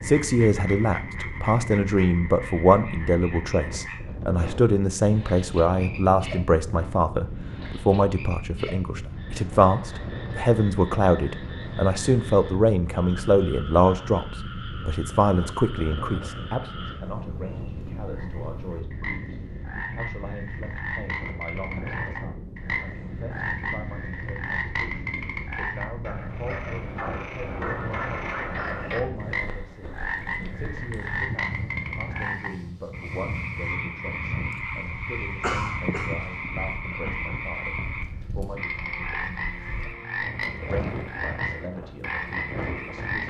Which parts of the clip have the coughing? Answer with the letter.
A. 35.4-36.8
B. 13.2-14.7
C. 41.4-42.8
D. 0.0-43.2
A.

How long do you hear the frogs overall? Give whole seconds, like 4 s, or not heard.
43 s.